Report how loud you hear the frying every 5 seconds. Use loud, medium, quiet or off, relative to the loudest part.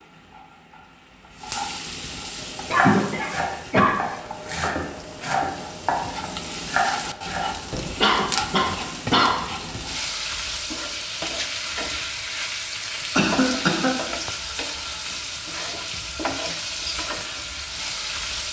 medium, loud, loud, loud.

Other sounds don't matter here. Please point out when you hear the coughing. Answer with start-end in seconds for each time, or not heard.
2.4-4.0, 8.0-9.3, 13.2-13.9.